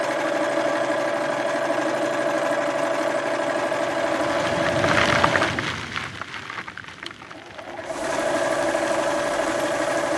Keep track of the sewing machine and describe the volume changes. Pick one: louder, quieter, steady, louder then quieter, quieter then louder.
quieter then louder.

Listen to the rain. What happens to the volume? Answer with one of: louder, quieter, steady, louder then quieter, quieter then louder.
quieter.